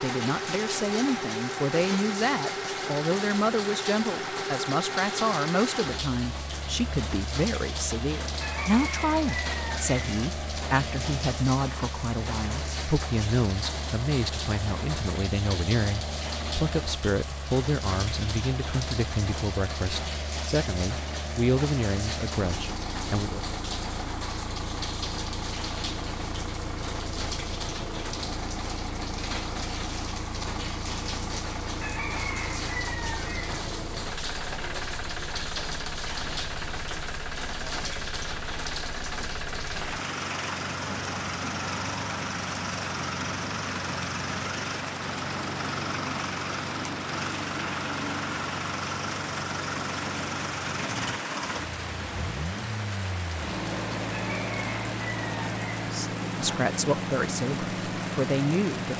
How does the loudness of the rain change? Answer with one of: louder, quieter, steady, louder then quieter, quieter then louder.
steady.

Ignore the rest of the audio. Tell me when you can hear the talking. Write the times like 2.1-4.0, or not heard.
0.0-23.4, 55.8-58.9.